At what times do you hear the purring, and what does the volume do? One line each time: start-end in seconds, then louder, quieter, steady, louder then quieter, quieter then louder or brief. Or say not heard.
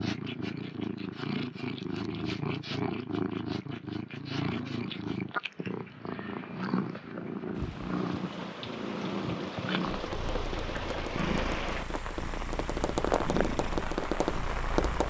0.0-15.0 quieter.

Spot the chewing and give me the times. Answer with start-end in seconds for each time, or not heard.
not heard.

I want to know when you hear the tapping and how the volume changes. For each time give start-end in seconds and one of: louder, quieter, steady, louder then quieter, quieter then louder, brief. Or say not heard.
9.9-15.0 louder.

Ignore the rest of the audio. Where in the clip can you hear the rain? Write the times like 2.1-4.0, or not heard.
7.5-15.0.